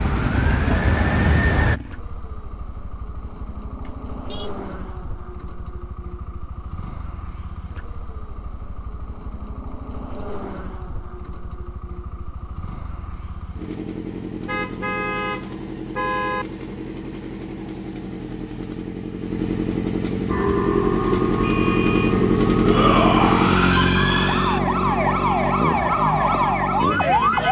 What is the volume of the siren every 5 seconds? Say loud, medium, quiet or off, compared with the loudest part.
loud, off, off, off, medium, loud.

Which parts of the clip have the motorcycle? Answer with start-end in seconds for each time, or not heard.
0.0-27.4.